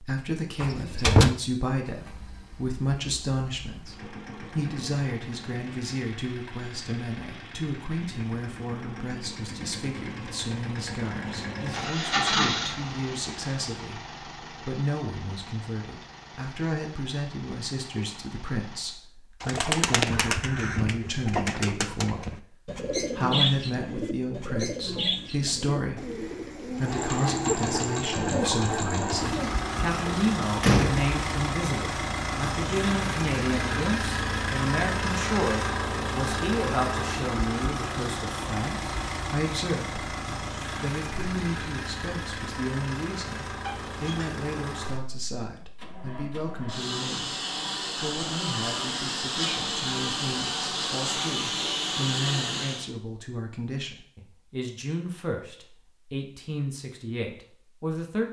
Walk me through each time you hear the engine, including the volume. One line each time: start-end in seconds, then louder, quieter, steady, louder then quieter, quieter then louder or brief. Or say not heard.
1.8-19.0 louder then quieter
26.8-52.9 quieter then louder.